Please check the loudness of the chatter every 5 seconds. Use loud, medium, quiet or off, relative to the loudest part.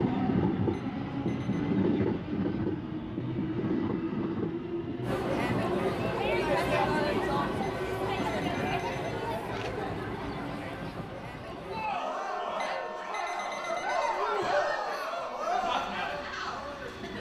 off, loud, loud, loud.